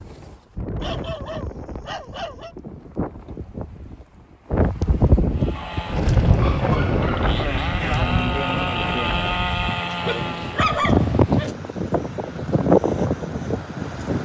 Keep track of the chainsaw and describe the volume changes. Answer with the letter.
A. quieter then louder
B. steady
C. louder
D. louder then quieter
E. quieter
C.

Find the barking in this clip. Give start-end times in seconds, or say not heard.
0.8-2.5, 5.5-7.3, 10.1-11.6.